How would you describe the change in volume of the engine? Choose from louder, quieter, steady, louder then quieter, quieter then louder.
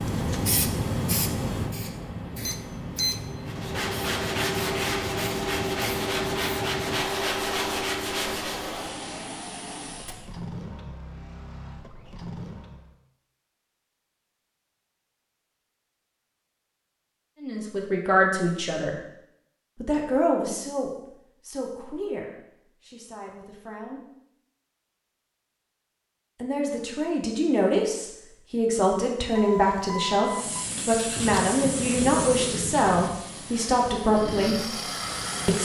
quieter.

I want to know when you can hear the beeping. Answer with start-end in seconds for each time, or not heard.
2.5-3.2, 29.4-30.6.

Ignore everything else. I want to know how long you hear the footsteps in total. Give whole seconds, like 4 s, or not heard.
not heard.